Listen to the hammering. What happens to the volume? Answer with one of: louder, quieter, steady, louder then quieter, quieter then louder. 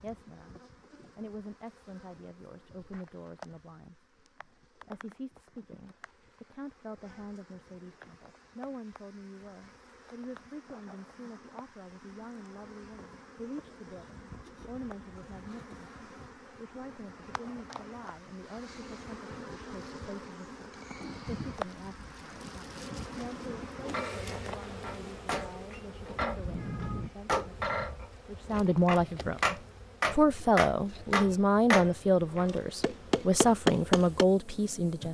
louder.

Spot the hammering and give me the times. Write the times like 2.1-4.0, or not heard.
23.9-34.2.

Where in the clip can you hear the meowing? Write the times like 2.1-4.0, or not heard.
26.4-27.1.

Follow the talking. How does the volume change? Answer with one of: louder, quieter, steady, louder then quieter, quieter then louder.
louder.